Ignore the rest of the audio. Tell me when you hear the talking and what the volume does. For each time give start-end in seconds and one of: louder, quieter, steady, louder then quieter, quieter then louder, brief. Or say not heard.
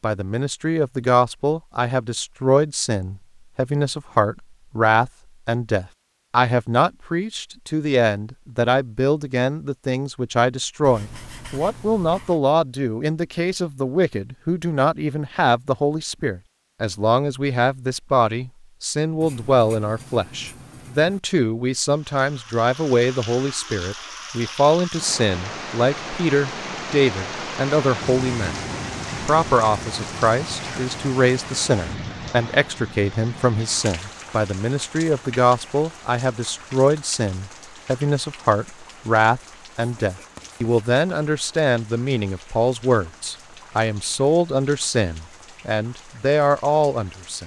0.0-47.4 steady.